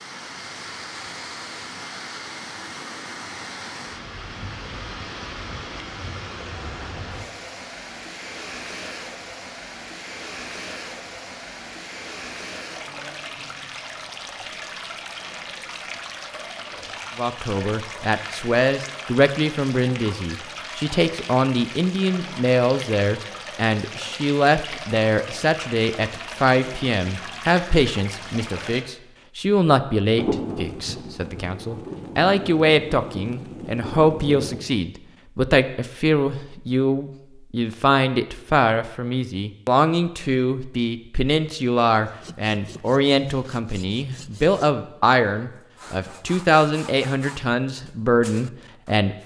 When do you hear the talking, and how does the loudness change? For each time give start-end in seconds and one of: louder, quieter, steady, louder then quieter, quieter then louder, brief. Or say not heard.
17.1-49.1 steady.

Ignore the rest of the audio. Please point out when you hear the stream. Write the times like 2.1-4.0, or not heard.
0.0-28.9.